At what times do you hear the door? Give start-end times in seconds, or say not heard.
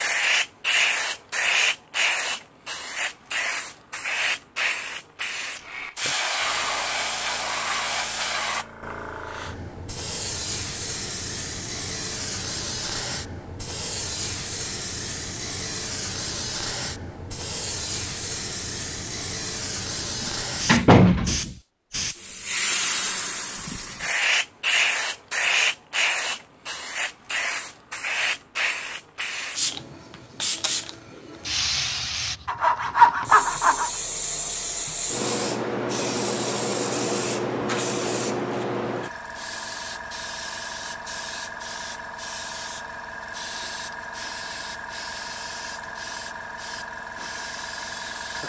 20.2-21.6.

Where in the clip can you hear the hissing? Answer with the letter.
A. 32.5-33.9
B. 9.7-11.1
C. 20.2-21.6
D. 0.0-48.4
D.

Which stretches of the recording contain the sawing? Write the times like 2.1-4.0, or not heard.
32.5-33.9.